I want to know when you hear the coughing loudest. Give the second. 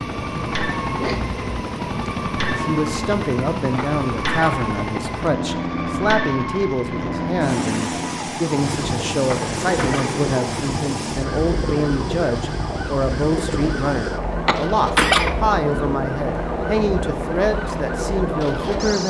15 s.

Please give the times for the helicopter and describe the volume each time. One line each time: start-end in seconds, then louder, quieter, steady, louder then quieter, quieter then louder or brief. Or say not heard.
0.0-19.0 steady.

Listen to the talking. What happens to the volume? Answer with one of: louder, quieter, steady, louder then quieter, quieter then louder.
steady.